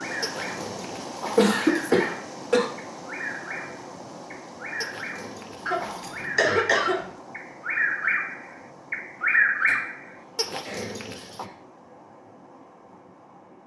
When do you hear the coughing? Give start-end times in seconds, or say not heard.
1.4-2.7, 5.7-7.0, 9.7-11.6.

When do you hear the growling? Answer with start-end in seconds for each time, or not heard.
0.2-1.9, 4.8-6.3, 10.3-11.4.